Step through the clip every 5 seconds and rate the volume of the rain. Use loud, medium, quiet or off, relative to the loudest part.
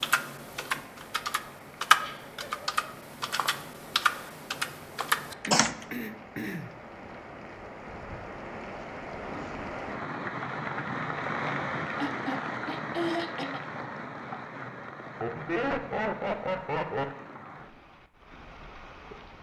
quiet, medium, loud, medium.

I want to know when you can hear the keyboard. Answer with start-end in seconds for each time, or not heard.
0.0-5.8.